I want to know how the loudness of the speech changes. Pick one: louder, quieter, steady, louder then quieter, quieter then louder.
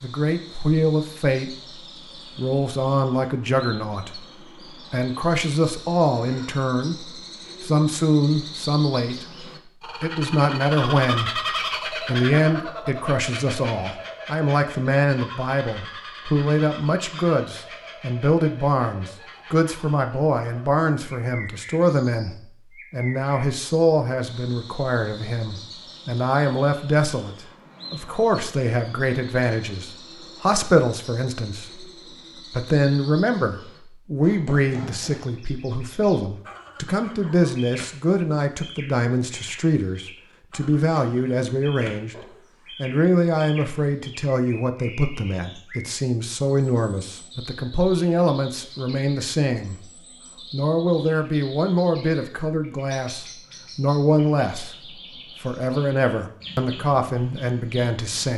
steady.